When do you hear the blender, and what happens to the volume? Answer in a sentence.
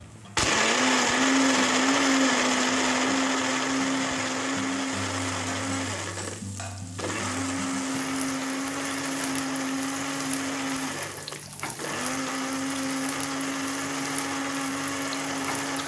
You can hear the blender from 0.0 to 15.8 s, getting quieter.